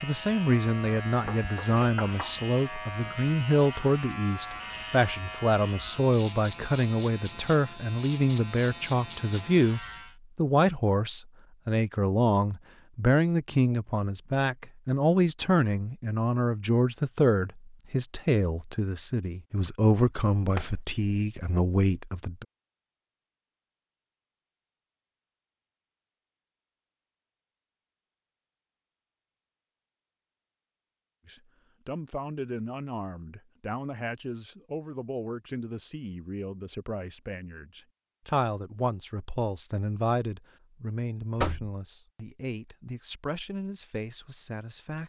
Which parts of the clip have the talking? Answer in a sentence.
You can hear the talking from 0.0 to 22.4 s and from 31.2 to 45.0 s.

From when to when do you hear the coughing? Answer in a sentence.
You can't hear the coughing here.